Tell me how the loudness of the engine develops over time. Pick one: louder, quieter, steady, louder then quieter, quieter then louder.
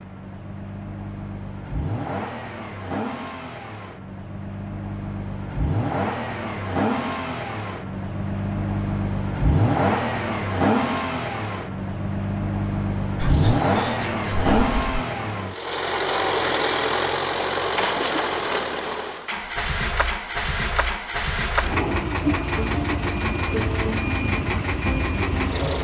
louder.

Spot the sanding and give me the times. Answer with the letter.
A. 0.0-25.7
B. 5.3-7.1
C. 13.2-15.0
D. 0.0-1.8
C.